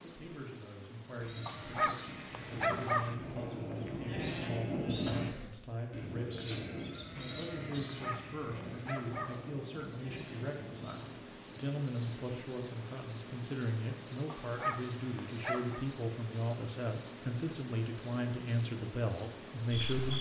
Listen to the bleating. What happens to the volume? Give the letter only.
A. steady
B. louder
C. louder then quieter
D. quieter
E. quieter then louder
C.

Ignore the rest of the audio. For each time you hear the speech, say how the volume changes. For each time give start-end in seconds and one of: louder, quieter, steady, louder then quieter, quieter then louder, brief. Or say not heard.
0.0-20.1 louder.